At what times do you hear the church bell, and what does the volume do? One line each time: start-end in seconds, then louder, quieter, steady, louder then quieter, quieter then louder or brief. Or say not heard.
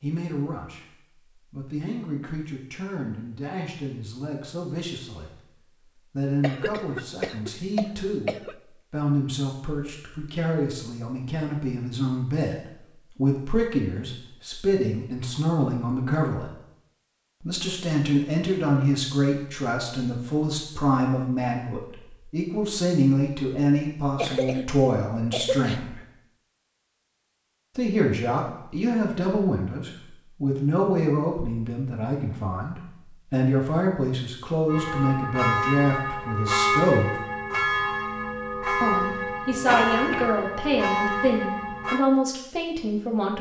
34.6-42.0 steady.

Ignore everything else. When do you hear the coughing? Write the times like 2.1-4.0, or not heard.
6.4-8.6, 24.1-25.8, 39.6-40.3.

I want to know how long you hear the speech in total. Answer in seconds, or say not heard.
38 s.